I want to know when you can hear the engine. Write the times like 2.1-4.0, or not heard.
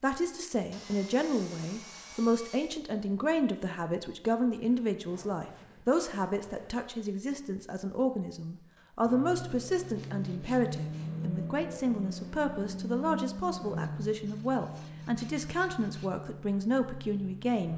9.0-17.7.